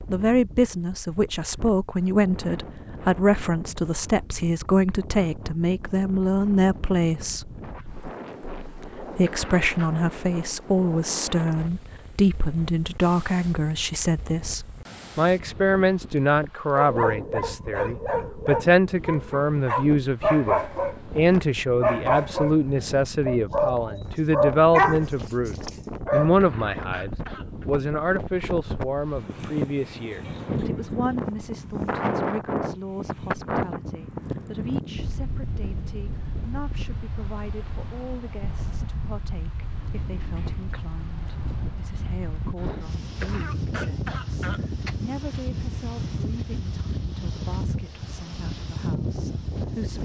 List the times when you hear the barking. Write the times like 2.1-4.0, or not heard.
16.8-26.4.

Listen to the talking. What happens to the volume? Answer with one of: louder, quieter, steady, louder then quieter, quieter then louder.
quieter.